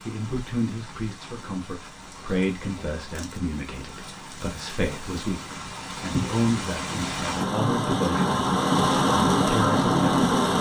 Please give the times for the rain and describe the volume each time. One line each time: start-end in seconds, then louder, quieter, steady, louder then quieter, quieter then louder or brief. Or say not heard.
0.0-10.5 louder.